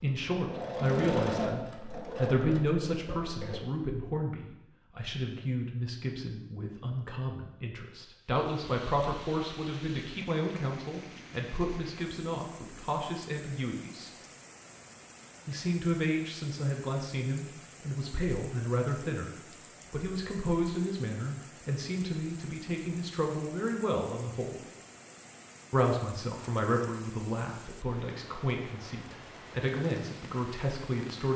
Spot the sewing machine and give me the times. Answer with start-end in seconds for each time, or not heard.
0.0-3.6.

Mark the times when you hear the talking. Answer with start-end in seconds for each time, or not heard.
0.0-14.1, 15.4-24.6, 25.7-31.3.